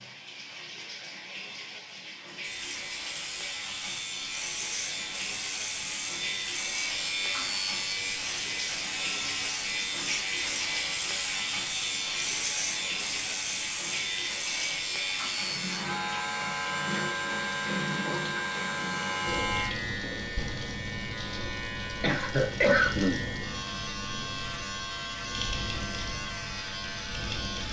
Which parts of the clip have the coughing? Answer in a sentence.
The coughing can be heard from 22.0 to 23.2 s.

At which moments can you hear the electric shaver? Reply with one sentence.
The electric shaver can be heard from 2.4 to 27.6 s.